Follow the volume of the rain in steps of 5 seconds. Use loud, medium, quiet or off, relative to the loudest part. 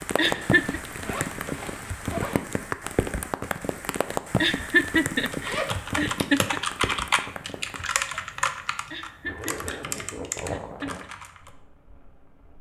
loud, medium, quiet.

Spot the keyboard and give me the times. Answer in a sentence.
You can hear the keyboard from 5.3 to 11.5 s.